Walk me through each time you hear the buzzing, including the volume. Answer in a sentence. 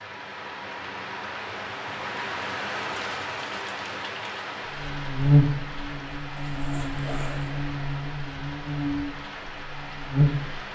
The buzzing can be heard from 4.7 to 10.6 s, getting quieter.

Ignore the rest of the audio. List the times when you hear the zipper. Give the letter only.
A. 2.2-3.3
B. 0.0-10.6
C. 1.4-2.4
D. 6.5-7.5
D.